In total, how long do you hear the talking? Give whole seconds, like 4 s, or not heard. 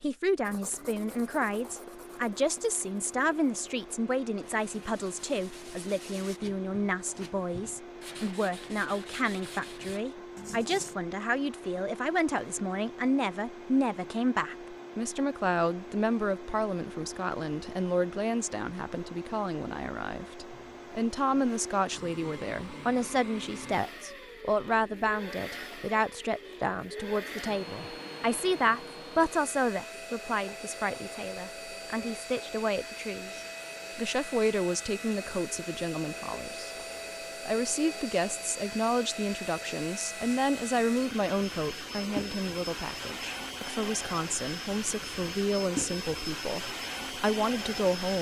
47 s.